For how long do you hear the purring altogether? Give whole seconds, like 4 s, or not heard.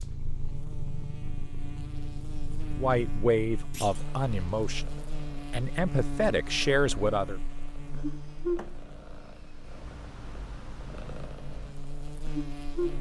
13 s.